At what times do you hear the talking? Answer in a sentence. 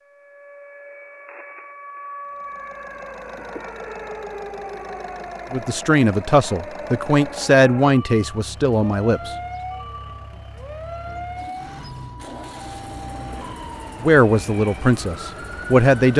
You can hear the talking from 5.5 to 9.3 s and from 14.0 to 16.1 s.